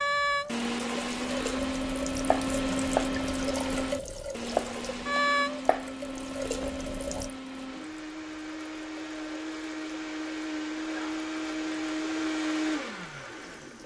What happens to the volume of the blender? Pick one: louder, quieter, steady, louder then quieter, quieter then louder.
quieter then louder.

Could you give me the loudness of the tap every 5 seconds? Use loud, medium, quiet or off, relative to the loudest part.
loud, loud, quiet.